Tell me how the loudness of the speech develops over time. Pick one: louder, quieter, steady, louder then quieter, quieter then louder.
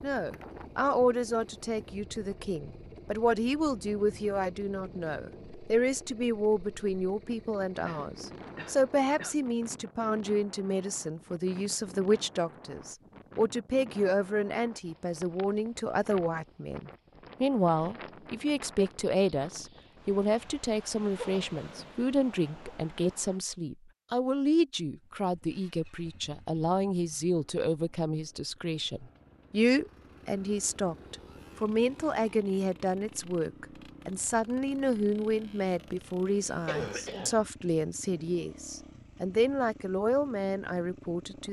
steady.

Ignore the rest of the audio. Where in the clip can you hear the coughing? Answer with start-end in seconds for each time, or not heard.
7.8-9.3, 21.1-21.9, 36.6-37.4.